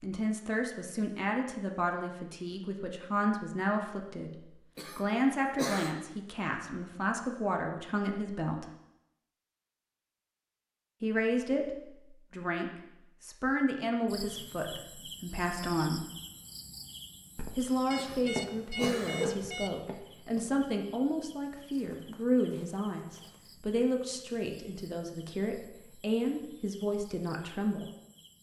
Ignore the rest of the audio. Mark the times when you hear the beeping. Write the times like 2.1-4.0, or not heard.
17.9-19.8.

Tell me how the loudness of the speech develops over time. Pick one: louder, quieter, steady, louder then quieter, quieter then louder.
steady.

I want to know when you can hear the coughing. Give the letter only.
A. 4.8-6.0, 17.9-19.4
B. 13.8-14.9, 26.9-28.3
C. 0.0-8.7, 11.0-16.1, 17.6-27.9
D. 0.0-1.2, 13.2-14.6
A.